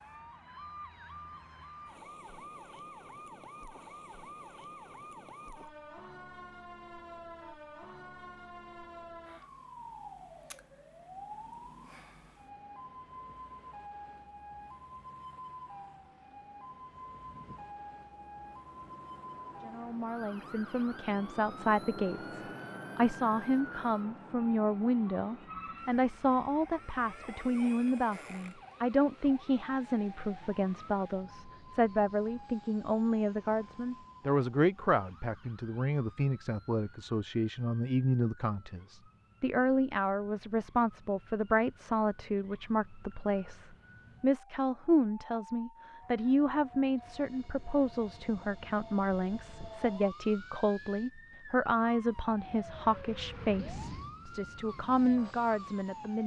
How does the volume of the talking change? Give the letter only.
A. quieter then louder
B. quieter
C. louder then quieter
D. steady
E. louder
D.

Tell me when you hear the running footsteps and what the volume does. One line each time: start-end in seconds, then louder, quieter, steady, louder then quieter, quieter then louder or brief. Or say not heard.
not heard.